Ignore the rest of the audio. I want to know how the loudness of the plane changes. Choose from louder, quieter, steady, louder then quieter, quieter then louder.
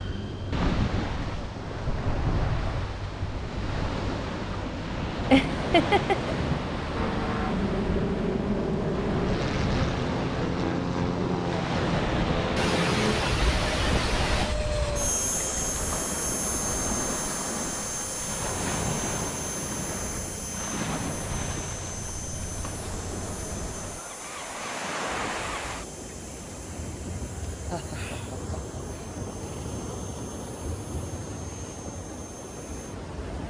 quieter.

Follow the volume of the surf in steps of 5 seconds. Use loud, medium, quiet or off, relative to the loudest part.
loud, loud, loud, loud, medium, medium, medium.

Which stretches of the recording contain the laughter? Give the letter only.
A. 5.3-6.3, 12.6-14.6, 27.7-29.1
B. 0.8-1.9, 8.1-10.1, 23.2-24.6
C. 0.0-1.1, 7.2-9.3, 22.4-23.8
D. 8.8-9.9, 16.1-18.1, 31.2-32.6
A.